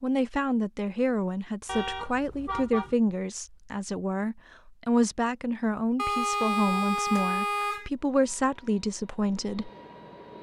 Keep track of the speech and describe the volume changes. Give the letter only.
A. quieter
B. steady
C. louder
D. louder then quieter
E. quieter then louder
B.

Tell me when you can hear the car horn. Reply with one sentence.
You can hear the car horn from 1.6 to 3.0 s and from 6.0 to 7.9 s.